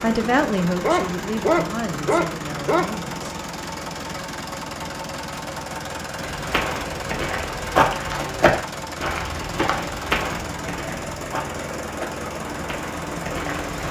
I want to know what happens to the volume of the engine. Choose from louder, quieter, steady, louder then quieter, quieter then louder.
steady.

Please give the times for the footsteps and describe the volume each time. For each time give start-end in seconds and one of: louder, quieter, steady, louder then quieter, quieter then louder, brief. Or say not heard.
6.2-13.8 quieter.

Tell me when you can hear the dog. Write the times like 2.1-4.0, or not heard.
0.8-2.9.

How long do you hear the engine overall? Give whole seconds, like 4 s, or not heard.
14 s.